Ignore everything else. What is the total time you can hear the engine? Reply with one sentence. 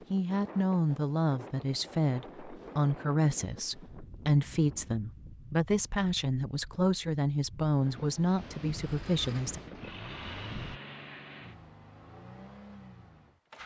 The engine can be heard for 5 seconds in total.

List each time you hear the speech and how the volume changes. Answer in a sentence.
You can hear the speech from 0.1 to 9.6 s, at a steady volume.